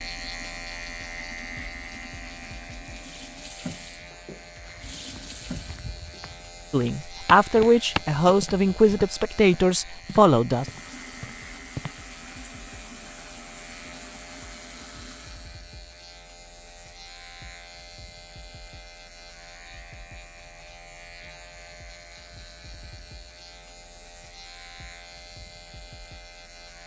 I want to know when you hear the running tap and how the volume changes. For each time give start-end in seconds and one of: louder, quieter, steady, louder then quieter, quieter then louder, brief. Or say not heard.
0.0-6.2 louder
10.5-15.7 steady.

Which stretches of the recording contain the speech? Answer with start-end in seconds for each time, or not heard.
6.7-10.7.